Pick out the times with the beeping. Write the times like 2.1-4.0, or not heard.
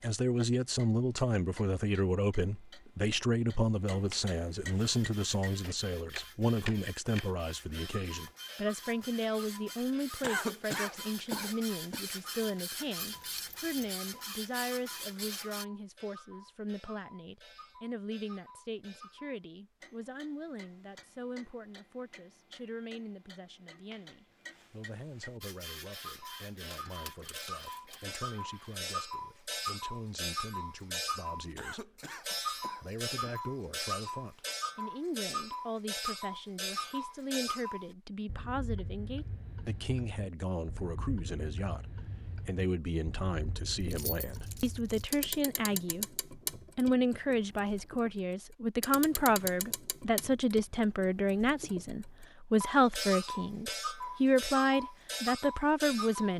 not heard.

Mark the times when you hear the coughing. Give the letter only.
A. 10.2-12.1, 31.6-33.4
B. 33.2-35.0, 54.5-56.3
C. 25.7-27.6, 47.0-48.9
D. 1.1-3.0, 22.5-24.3
A.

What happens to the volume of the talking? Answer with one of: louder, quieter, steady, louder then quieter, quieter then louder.
quieter then louder.